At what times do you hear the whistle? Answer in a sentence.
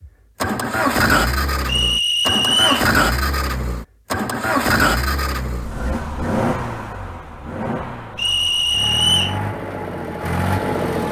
The whistle can be heard from 1.6 to 2.9 s and from 8.2 to 9.4 s.